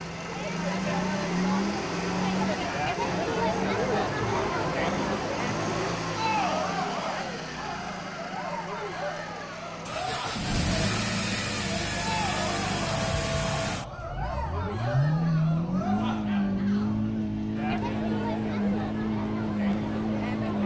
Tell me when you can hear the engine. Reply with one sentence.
The engine can be heard from 0.0 to 20.6 s.